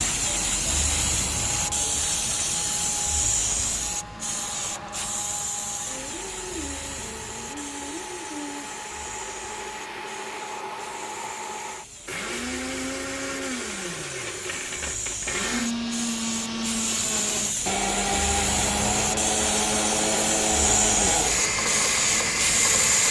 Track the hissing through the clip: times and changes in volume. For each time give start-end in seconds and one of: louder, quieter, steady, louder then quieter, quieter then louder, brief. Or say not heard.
0.0-23.0 quieter then louder.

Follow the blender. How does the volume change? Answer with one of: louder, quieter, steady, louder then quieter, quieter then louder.
louder.